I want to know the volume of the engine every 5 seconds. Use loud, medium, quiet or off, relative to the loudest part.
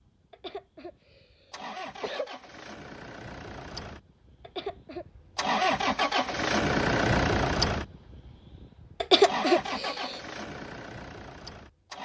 quiet, loud, quiet.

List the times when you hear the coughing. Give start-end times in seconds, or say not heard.
0.3-2.3, 4.4-5.0, 9.0-10.2.